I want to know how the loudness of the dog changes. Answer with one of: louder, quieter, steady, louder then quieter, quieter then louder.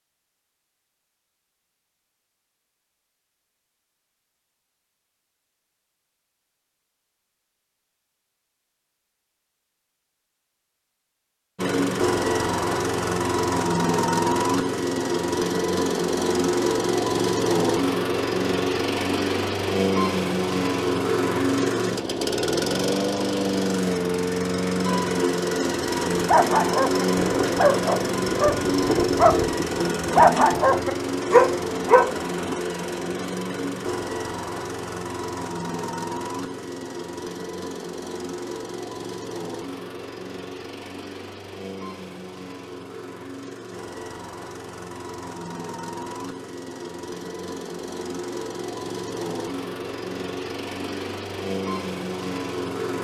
louder.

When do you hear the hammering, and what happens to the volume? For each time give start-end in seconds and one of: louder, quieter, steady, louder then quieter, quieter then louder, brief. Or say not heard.
not heard.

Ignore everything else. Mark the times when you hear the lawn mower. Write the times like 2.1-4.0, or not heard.
11.6-52.9.